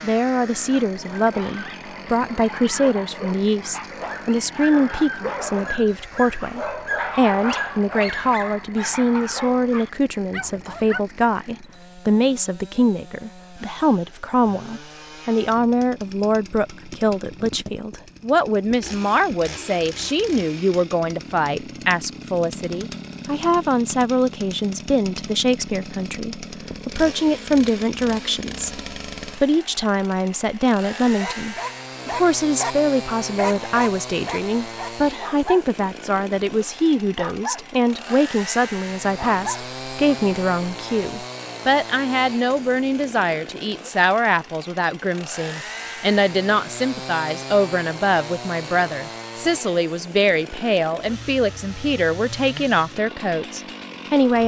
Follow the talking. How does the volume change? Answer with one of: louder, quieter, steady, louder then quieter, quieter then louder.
steady.